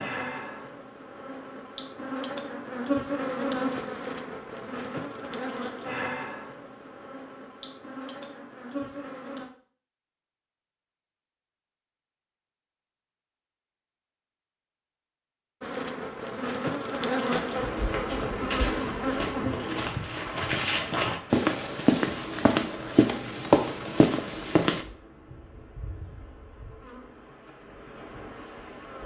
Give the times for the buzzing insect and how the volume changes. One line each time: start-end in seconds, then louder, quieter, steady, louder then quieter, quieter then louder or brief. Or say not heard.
0.0-9.4 louder then quieter
15.6-29.0 quieter.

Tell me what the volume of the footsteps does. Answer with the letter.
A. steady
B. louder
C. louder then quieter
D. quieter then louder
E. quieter
B.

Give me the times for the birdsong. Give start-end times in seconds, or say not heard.
not heard.